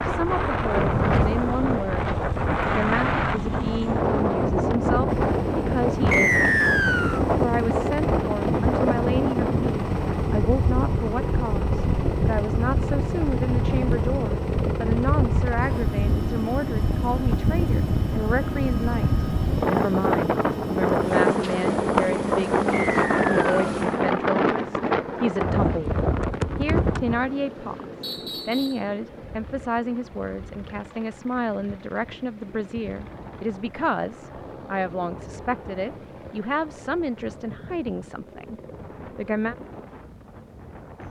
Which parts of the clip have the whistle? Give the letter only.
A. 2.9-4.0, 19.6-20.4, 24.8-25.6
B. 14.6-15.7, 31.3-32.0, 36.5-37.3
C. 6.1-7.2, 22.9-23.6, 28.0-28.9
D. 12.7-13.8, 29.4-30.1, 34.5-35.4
C.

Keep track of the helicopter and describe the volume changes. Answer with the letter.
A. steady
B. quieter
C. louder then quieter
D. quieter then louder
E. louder
B.